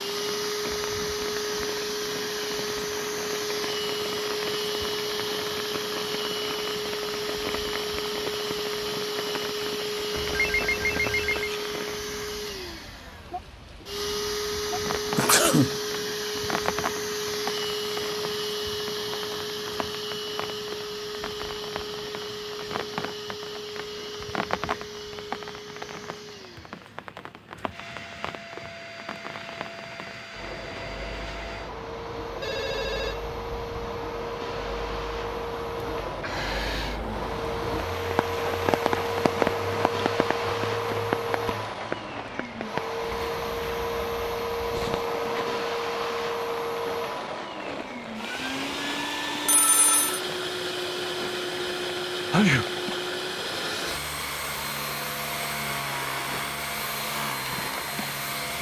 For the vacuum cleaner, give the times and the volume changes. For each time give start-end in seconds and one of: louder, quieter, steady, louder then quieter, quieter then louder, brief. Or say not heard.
0.0-58.5 quieter then louder.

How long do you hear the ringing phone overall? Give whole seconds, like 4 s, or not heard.
4 s.